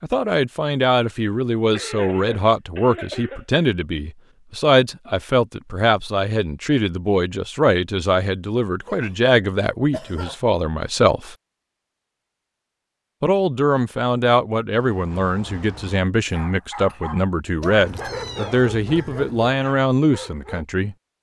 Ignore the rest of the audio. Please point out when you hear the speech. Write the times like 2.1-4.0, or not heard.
0.0-11.3, 13.2-20.9.